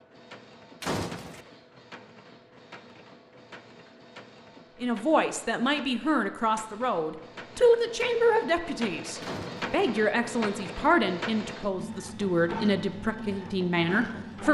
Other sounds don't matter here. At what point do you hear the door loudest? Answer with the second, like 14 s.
1 s.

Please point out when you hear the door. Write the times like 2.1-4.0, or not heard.
0.8-1.4, 9.2-9.7.